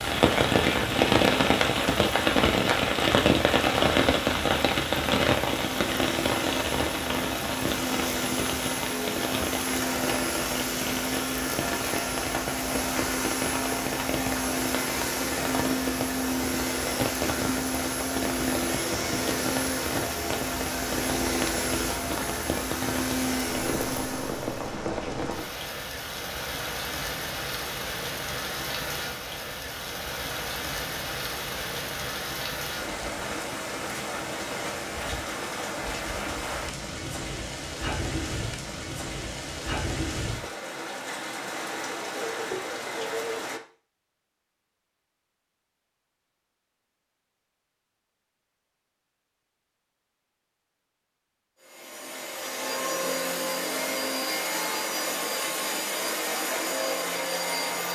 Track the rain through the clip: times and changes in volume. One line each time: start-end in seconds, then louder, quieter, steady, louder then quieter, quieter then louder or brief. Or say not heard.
0.0-43.6 quieter.